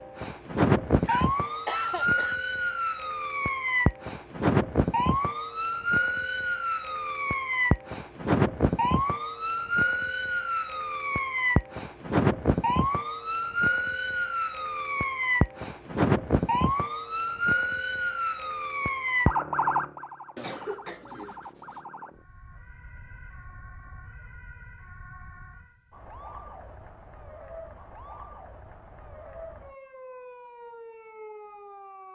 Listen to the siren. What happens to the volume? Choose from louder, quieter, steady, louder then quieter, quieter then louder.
quieter.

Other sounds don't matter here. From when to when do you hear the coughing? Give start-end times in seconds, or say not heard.
1.0-2.4, 20.4-21.8.